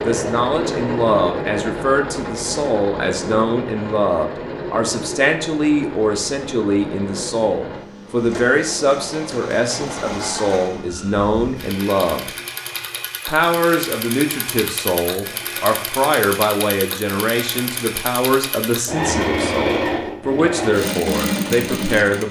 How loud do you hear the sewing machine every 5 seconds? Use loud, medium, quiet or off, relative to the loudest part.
loud, medium, medium, loud, loud.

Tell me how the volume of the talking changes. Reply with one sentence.
The loudness of the talking stays about the same.